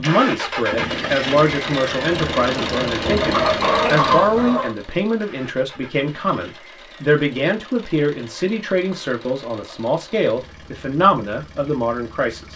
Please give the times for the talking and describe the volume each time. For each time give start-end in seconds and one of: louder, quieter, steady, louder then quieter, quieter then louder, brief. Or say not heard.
0.0-12.5 steady.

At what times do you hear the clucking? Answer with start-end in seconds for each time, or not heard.
3.2-4.8.